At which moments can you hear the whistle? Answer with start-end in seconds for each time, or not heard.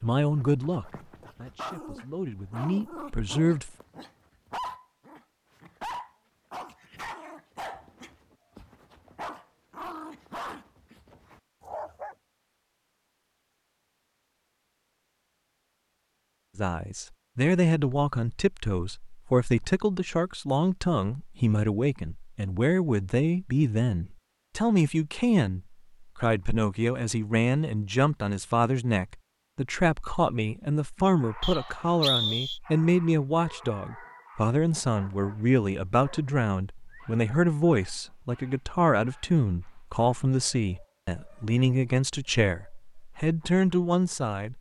31.4-32.6.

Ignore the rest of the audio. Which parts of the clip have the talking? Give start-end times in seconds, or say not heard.
0.0-3.7, 16.6-44.5.